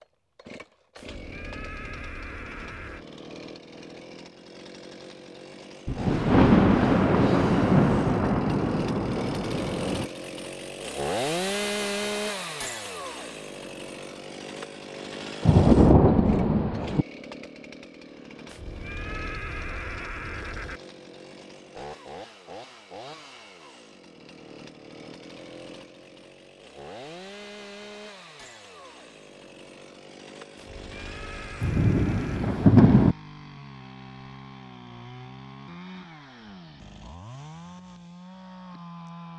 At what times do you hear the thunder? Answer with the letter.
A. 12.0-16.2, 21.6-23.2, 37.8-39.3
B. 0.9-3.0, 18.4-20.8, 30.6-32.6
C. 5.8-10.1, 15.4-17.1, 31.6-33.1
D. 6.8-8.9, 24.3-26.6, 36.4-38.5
C.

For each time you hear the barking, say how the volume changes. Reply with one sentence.
You can't hear the barking here.